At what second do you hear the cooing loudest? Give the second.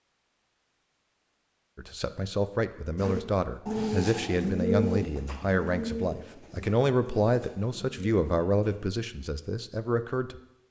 5 s.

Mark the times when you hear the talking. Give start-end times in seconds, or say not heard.
1.8-10.4.